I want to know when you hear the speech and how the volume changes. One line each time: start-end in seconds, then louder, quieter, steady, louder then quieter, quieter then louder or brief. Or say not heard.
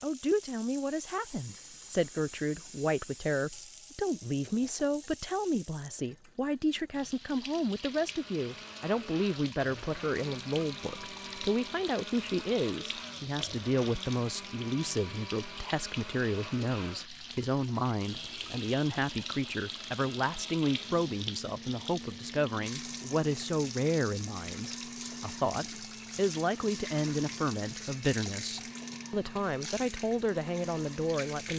0.0-31.5 steady.